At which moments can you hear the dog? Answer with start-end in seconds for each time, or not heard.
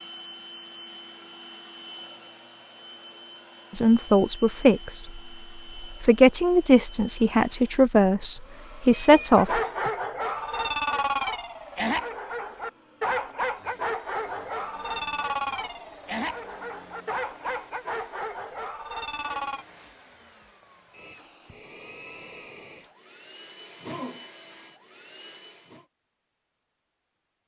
9.3-19.6.